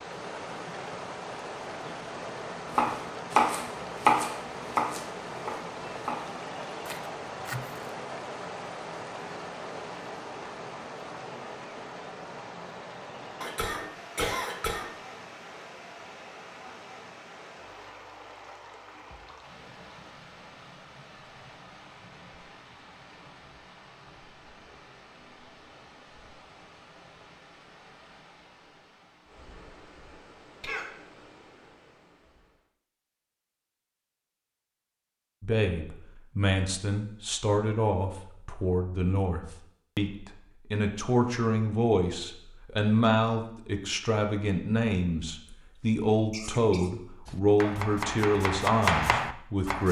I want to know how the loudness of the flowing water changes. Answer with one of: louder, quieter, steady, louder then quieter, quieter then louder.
quieter.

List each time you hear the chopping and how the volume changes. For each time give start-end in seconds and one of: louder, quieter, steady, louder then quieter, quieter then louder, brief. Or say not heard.
2.7-7.8 quieter
47.2-49.8 brief.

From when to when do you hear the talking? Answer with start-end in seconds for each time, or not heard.
35.4-49.8.